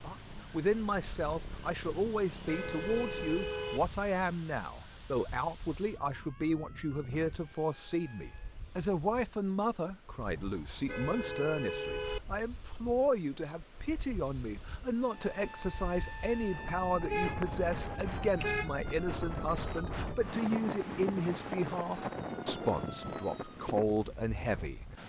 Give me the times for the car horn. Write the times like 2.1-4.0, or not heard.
1.9-3.8, 10.2-12.2, 17.1-18.7.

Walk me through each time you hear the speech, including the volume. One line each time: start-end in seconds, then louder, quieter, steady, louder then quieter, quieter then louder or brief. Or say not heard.
0.0-25.0 steady.